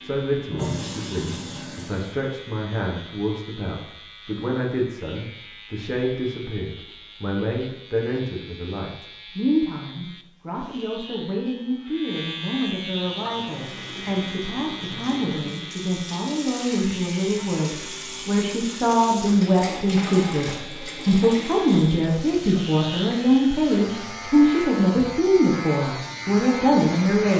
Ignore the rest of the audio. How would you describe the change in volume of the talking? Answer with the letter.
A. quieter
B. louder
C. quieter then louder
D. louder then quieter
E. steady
B.